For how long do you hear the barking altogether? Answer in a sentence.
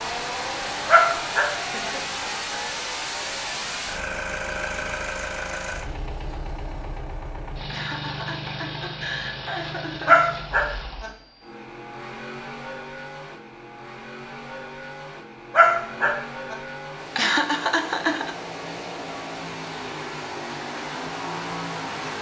The barking can be heard for 3 seconds in total.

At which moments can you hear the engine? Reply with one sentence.
The engine can be heard from 0.0 to 22.1 s.